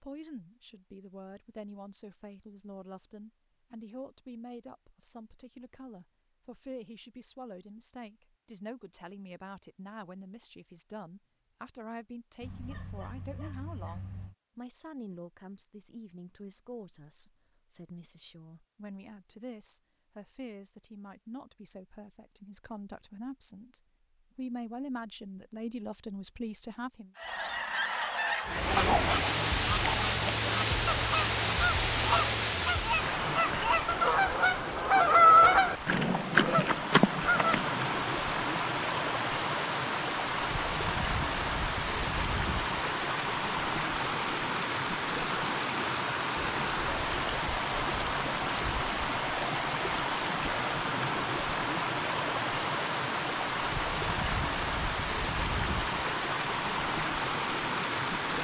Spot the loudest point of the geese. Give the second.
35 s.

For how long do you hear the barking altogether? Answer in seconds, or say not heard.
2 s.